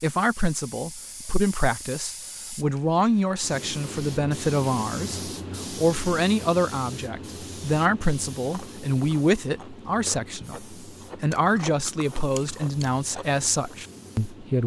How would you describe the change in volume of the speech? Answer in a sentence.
The volume of the speech stays about the same.